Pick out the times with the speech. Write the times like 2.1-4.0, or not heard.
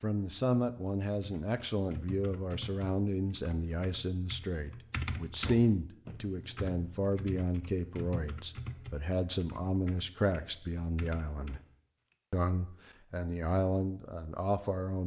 0.0-11.6, 12.3-15.0.